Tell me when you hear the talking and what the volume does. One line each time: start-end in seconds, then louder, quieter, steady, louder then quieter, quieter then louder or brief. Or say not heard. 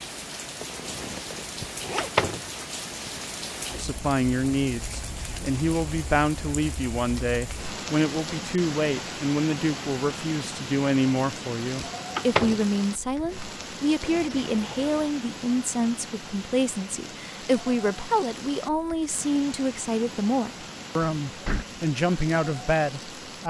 3.7-23.4 steady.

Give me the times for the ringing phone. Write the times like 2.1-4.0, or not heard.
not heard.